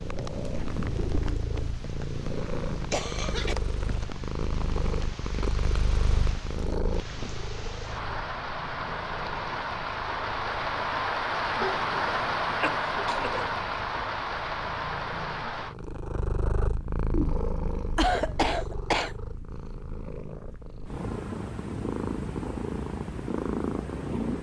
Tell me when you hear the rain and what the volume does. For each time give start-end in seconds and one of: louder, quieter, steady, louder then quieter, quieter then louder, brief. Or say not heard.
0.0-15.8 louder.